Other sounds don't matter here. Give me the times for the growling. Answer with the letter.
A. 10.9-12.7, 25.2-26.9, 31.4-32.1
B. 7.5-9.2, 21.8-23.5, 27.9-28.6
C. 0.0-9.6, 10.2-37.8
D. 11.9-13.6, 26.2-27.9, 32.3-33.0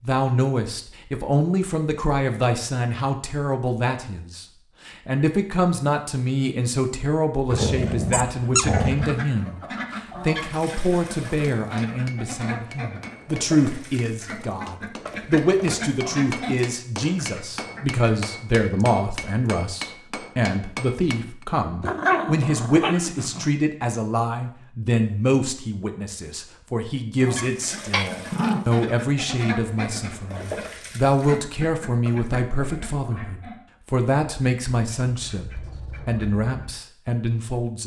B.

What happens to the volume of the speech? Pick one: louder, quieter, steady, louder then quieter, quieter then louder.
steady.